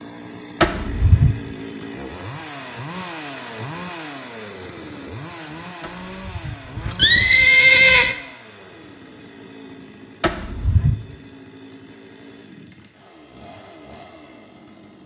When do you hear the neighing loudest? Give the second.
8 s.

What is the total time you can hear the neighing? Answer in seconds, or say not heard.
4 s.